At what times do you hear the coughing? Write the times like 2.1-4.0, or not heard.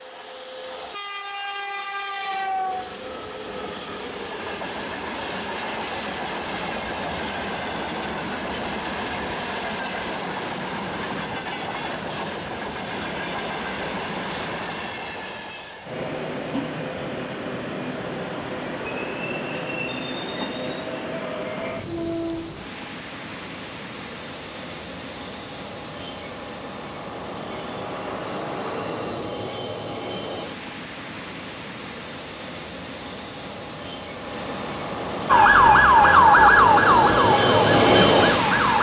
not heard.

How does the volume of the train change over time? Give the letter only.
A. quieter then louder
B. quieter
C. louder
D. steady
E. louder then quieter
C.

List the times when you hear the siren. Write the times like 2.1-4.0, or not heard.
35.2-38.7.